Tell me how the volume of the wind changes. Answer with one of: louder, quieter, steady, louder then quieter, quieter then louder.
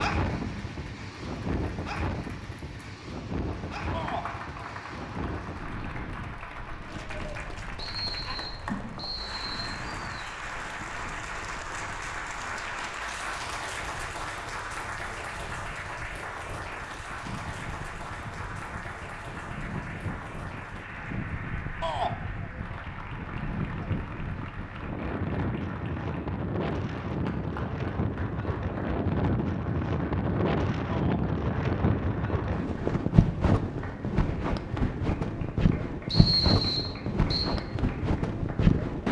quieter then louder.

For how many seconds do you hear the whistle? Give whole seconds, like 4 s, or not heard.
3 s.